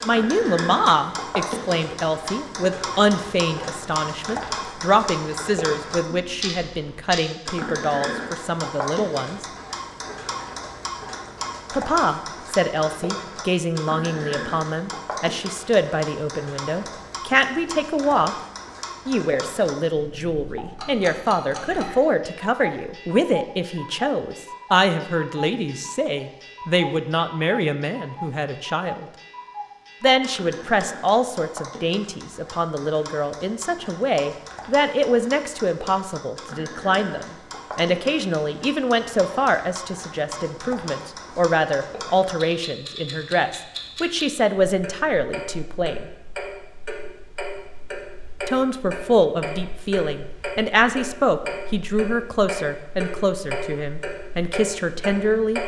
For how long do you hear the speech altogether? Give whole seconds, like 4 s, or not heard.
49 s.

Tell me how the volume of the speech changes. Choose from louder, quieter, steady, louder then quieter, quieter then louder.
steady.